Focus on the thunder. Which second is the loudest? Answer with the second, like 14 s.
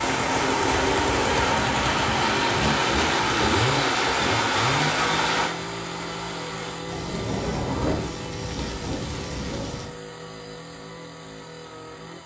8 s.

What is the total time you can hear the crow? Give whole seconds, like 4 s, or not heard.
not heard.